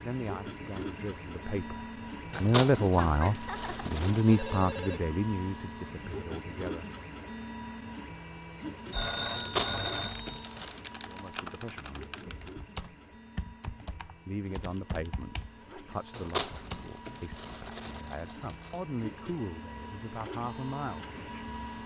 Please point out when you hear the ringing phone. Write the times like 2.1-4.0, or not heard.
3.0-5.0, 8.9-10.4.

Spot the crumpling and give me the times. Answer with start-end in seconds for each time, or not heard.
2.3-4.7, 9.3-10.8, 16.1-18.8.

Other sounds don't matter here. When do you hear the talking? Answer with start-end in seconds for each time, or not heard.
0.0-6.9, 11.1-12.2, 14.2-21.6.